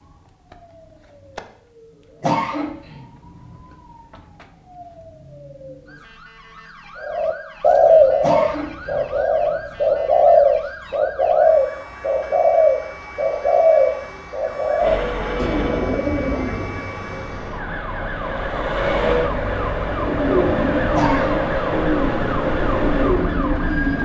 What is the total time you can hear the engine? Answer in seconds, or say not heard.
9 s.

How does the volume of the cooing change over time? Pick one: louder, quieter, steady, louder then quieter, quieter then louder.
quieter.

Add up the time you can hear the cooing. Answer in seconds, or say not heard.
14 s.